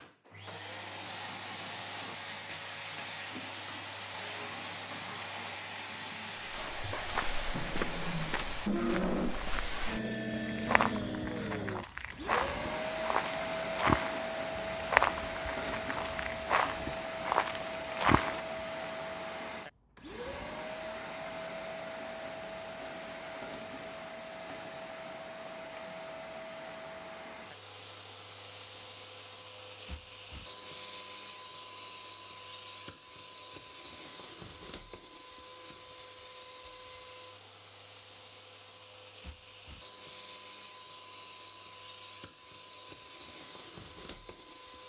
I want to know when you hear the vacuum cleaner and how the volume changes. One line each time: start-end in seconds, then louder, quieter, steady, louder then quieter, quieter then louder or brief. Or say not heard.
0.0-44.8 quieter.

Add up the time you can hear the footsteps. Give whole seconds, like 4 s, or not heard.
12 s.